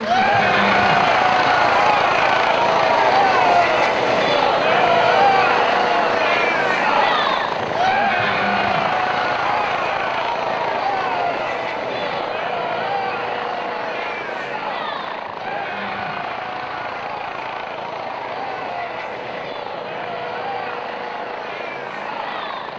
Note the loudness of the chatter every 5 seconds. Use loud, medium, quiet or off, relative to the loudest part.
loud, loud, medium, quiet, quiet.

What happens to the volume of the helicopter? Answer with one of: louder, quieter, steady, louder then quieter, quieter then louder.
quieter.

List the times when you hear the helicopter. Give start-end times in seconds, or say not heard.
0.0-22.7.